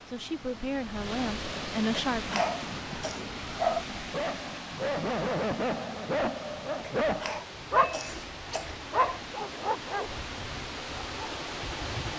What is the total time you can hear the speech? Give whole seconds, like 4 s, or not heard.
2 s.